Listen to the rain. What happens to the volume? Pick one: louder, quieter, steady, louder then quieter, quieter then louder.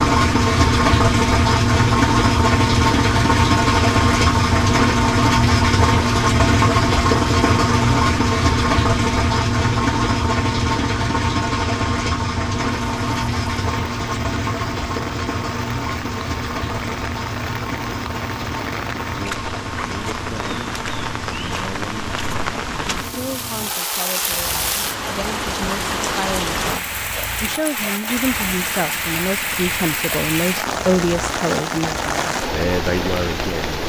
louder.